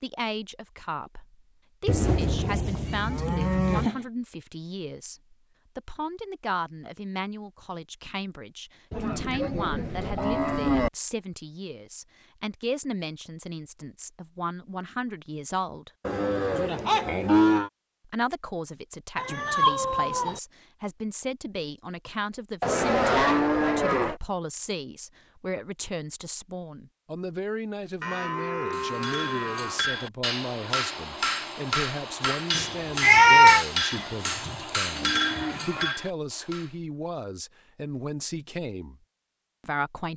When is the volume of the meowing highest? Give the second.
33 s.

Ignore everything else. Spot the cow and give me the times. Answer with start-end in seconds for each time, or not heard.
1.9-3.9, 8.9-10.9, 16.1-17.7, 22.6-24.2, 28.0-29.8, 33.9-36.0.